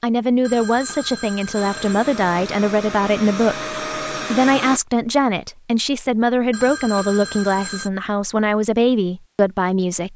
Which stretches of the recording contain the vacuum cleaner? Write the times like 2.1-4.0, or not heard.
1.6-4.8.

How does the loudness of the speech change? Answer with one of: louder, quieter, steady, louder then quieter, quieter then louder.
steady.